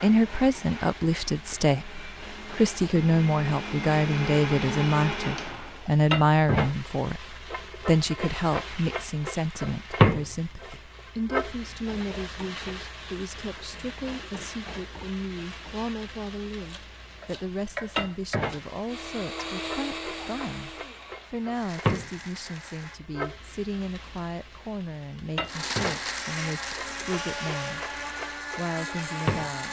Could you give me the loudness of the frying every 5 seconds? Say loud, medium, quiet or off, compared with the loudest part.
quiet, medium, loud, medium, medium, medium.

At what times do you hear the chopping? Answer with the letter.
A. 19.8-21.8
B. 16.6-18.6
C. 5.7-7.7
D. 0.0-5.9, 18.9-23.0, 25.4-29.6
B.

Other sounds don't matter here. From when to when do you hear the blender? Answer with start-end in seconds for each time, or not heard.
0.0-5.9, 18.9-23.0, 25.4-29.6.